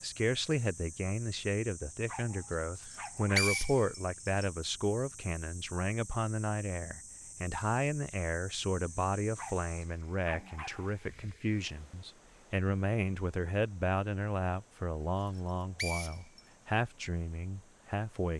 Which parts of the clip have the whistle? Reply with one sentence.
You can hear the whistle from 2.9 to 4.5 s and from 15.3 to 16.4 s.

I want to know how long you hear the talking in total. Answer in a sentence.
You can hear the talking for 18 seconds altogether.